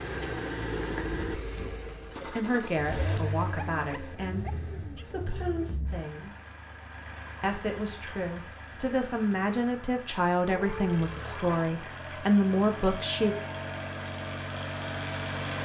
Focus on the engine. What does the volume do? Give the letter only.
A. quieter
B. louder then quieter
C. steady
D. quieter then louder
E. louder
D.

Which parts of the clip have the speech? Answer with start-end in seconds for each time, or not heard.
2.2-6.4, 7.4-13.4.